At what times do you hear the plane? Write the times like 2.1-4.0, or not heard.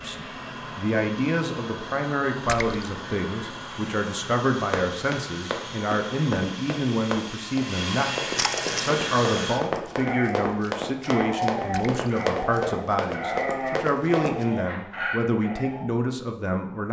0.0-9.6.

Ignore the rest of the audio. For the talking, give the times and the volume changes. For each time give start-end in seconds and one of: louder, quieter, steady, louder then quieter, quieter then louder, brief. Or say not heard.
0.0-16.8 steady.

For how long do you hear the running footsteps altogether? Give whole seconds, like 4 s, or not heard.
10 s.